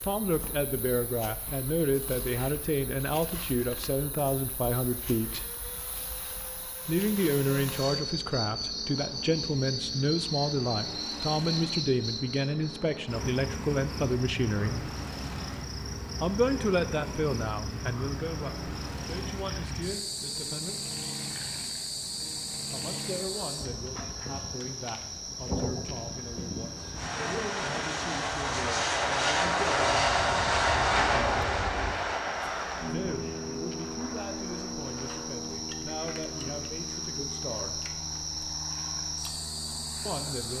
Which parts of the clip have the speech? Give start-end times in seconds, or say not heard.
0.0-5.5, 6.8-14.8, 16.2-20.8, 22.7-31.5, 32.9-37.8, 40.0-40.5.